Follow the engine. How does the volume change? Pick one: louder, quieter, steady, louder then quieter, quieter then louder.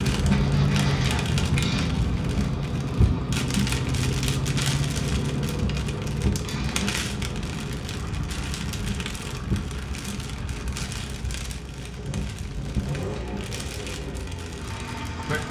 quieter then louder.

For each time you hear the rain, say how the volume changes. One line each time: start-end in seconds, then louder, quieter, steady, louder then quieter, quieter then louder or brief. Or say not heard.
0.0-15.4 quieter.